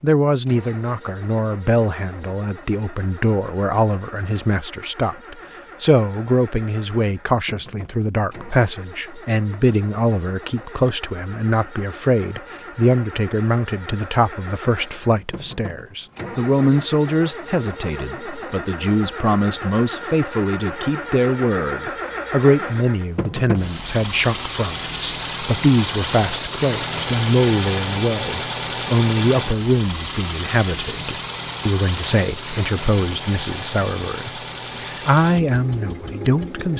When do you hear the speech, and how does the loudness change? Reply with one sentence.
The speech can be heard from 0.0 to 36.7 s, at a steady volume.